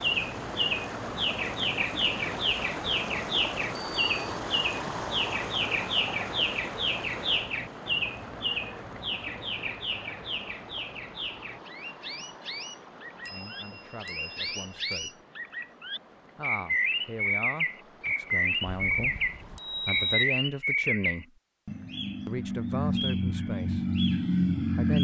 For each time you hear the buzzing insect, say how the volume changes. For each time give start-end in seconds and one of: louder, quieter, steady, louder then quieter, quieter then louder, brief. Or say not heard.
not heard.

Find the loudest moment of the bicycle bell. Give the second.
20 s.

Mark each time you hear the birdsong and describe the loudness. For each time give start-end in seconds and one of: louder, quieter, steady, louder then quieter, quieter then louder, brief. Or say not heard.
0.0-25.0 quieter then louder.